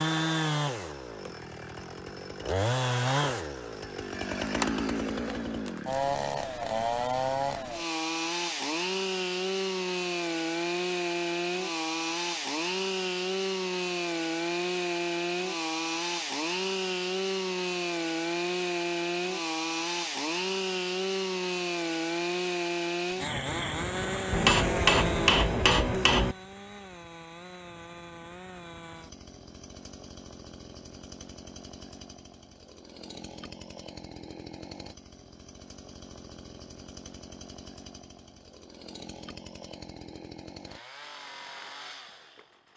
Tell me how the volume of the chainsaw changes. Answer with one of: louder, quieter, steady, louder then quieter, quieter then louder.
quieter.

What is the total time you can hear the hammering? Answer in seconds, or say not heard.
2 s.